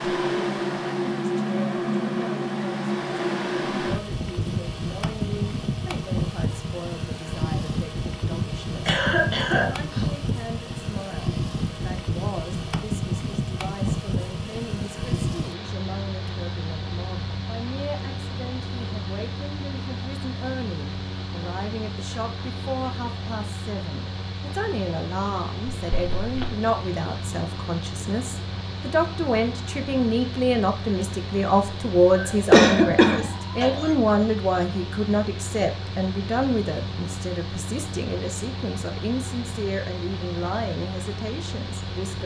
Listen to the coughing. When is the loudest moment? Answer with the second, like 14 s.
33 s.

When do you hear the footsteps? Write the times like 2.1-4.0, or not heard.
not heard.